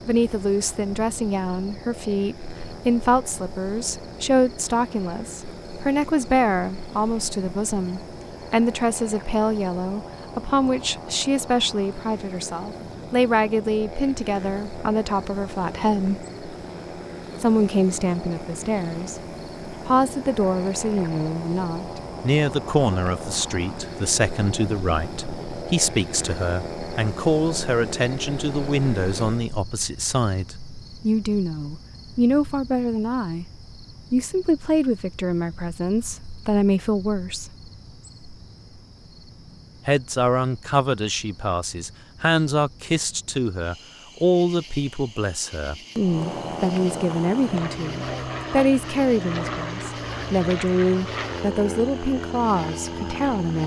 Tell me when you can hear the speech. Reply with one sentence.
The speech can be heard from 0.1 to 16.2 s, from 17.4 to 19.1 s, from 19.9 to 33.5 s, from 34.1 to 37.5 s and from 39.9 to 53.6 s.